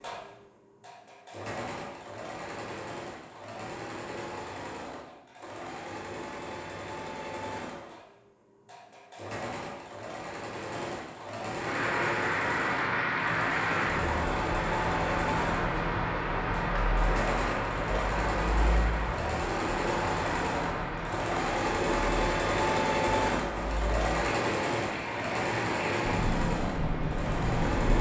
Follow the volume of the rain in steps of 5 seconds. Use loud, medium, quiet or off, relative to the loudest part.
off, off, loud, loud, medium, loud.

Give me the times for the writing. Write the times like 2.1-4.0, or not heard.
not heard.